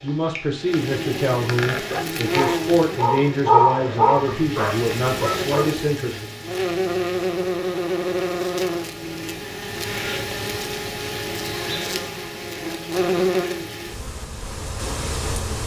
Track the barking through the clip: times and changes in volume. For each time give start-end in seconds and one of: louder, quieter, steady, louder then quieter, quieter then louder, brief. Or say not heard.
1.6-5.7 louder then quieter.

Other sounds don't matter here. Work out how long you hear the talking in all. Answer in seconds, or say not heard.
6 s.